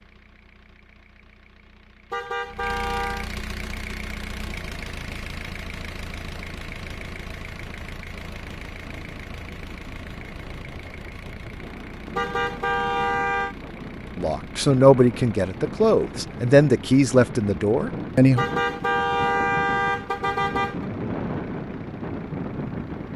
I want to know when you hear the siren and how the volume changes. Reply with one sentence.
You can't hear the siren here.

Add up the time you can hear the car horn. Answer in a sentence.
You can hear the car horn for 5 seconds altogether.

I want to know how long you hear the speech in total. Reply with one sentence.
The speech can be heard for 4 seconds in total.